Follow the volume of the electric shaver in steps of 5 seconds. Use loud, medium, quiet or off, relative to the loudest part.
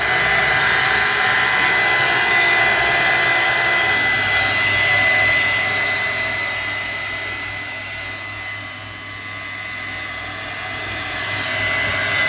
loud, medium, medium.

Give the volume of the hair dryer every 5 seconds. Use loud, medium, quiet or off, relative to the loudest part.
loud, medium, medium.